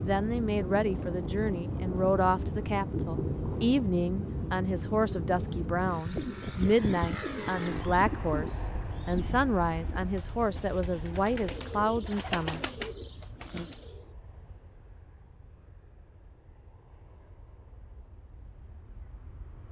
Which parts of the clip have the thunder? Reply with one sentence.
The thunder can be heard from 0.6 to 3.9 s.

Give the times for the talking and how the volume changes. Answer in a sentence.
The talking can be heard from 0.0 to 12.6 s, at a steady volume.